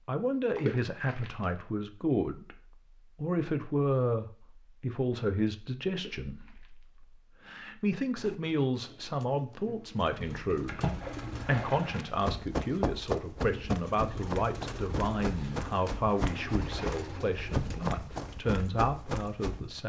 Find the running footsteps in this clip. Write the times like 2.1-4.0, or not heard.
11.9-19.8.